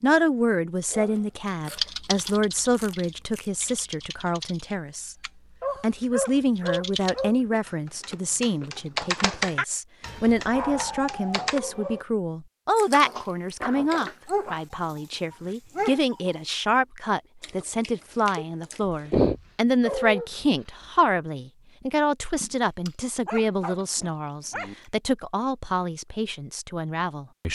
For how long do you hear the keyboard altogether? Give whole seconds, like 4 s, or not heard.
10 s.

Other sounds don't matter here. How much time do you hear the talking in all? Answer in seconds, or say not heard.
27 s.